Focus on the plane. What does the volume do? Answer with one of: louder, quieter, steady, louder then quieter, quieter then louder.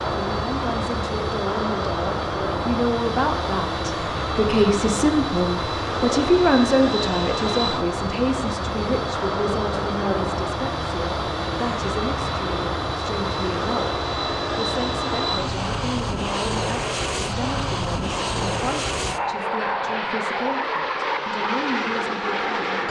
steady.